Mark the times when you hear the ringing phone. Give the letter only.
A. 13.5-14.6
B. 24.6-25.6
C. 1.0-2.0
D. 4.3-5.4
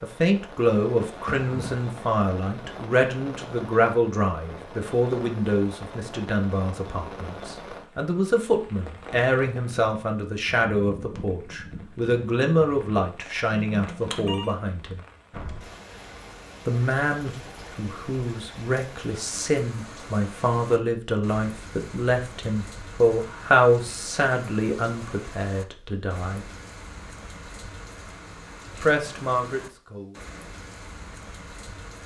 A.